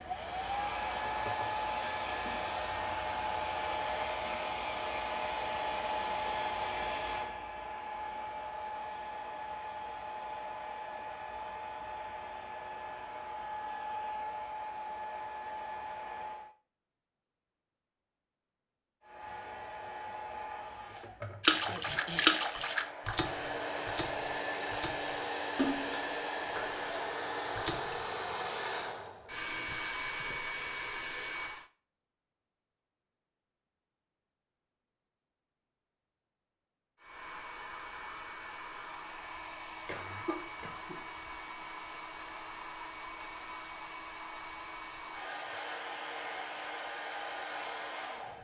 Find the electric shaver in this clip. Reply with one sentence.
The electric shaver can't be heard in this clip.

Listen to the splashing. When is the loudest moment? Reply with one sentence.
The loudest moment of the splashing is at 22 seconds.